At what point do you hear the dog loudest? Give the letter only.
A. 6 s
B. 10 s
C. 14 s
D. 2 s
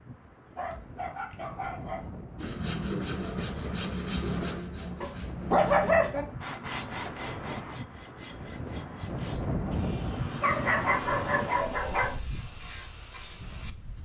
A.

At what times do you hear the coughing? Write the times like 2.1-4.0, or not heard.
not heard.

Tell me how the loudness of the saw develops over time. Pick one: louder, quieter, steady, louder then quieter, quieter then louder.
quieter.